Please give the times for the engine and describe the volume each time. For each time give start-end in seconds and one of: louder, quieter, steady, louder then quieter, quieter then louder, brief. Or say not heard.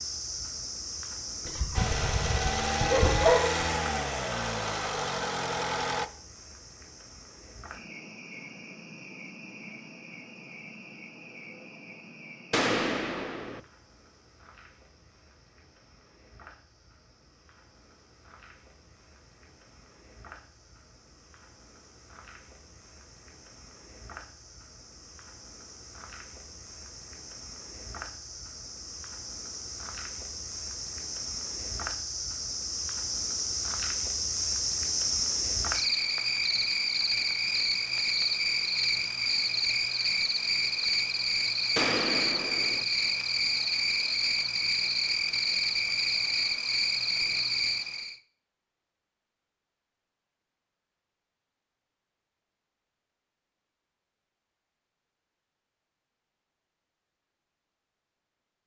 1.8-6.1 steady.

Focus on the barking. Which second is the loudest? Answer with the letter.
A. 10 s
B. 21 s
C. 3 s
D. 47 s
C.